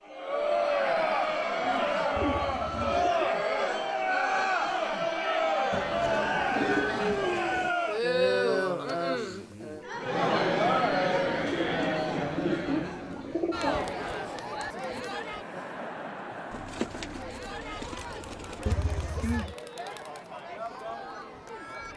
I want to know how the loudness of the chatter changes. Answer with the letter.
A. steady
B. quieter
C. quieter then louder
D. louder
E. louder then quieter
B.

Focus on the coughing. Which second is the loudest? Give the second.
19 s.